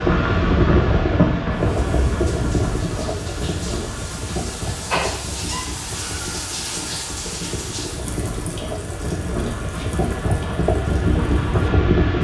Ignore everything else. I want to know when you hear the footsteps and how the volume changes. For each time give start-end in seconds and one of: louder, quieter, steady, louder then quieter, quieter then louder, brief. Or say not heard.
not heard.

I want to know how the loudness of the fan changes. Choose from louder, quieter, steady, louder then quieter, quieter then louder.
quieter then louder.